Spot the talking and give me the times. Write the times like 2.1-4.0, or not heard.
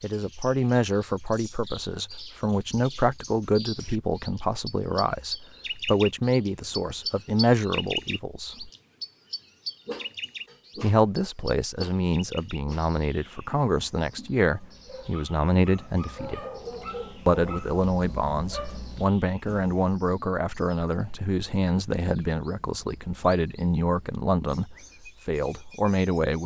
0.0-8.7, 10.8-16.4, 17.2-26.4.